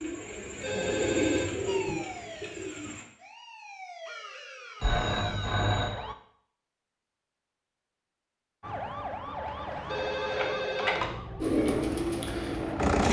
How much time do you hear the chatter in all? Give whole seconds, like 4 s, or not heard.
not heard.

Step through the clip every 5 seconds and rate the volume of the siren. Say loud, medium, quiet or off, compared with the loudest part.
medium, loud, loud.